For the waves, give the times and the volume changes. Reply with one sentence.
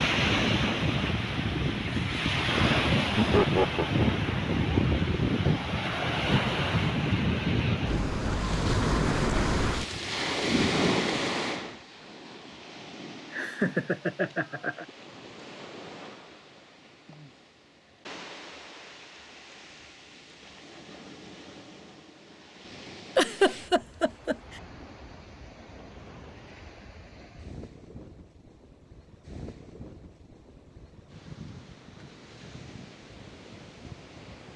You can hear the waves from 0.0 to 34.5 s, getting quieter.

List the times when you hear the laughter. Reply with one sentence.
You can hear the laughter from 3.1 to 4.2 s, from 13.3 to 14.8 s and from 23.1 to 24.4 s.